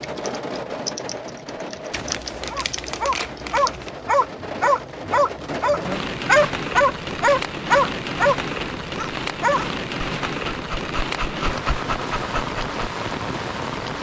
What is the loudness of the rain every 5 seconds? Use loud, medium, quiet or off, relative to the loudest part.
medium, loud, loud.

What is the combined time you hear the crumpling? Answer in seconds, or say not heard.
2 s.